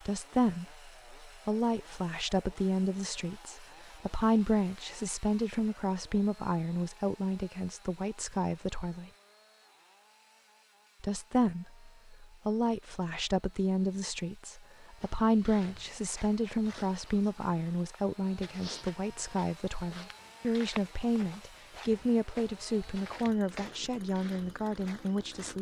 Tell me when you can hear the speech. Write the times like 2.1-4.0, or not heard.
0.1-9.1, 11.0-25.5.